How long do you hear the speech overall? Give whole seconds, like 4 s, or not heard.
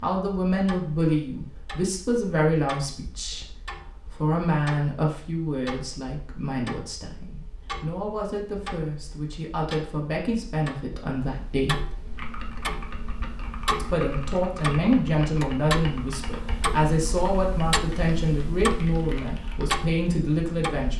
19 s.